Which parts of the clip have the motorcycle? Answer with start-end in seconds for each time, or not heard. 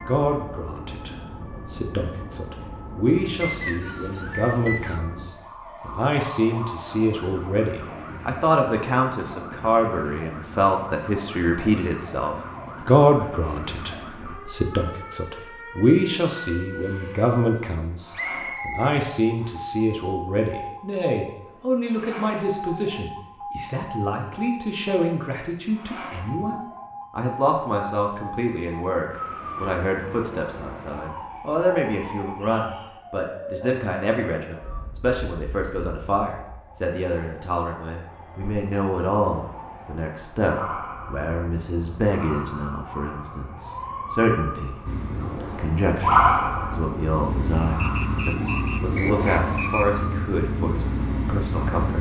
44.9-51.9.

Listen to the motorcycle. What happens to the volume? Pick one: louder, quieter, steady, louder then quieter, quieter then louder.
louder.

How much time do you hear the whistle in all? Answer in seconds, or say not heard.
5 s.